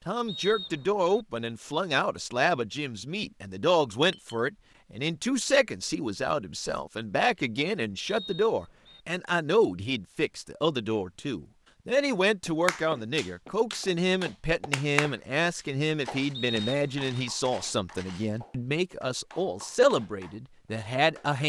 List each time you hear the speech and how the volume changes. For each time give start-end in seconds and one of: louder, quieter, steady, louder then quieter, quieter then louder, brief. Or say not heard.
0.1-21.4 steady.